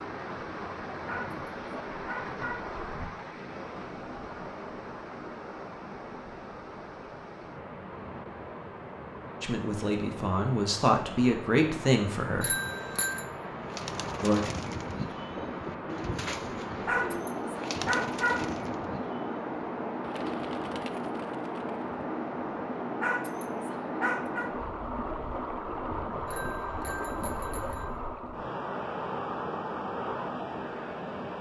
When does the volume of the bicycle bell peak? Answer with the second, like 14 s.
13 s.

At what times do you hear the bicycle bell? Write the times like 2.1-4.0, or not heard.
12.4-13.2, 26.2-27.9.